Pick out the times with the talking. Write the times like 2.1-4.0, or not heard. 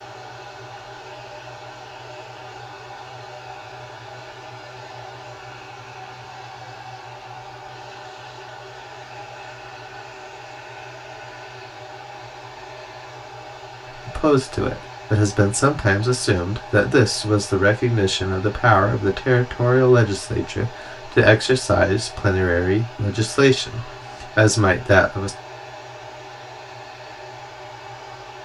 14.1-25.4.